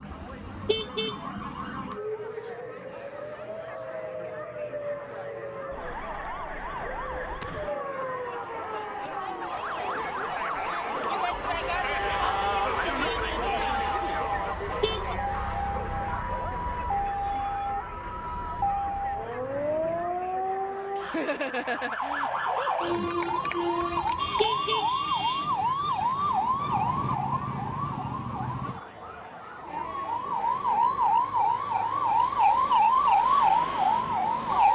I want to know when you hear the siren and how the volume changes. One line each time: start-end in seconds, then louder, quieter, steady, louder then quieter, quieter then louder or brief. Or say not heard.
0.0-34.7 louder.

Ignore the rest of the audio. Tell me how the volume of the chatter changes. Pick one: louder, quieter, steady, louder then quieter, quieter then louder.
louder then quieter.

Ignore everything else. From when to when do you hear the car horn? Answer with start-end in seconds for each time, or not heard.
0.1-1.1, 14.2-15.2, 23.9-24.9.